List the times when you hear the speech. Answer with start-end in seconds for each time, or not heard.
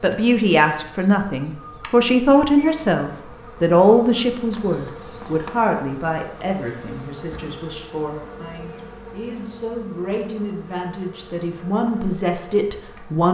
0.0-13.2.